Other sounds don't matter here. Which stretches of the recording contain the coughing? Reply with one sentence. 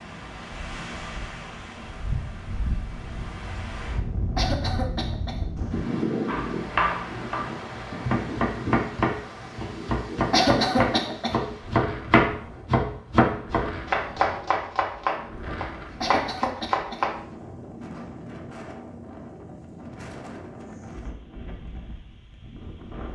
The coughing can be heard from 4.3 to 5.5 s, from 10.3 to 11.3 s and from 16.0 to 17.1 s.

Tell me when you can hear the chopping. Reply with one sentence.
You can hear the chopping from 6.2 to 17.1 s.